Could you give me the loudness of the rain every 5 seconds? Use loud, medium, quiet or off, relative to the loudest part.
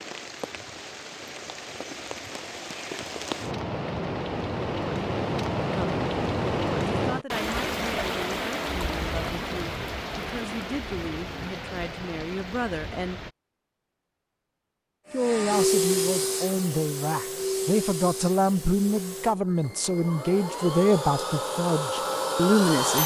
medium, loud, medium, off, off.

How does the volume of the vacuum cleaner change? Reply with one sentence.
The volume of the vacuum cleaner goes down, then up.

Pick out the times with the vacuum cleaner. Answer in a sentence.
The vacuum cleaner can be heard from 15.1 to 23.0 s.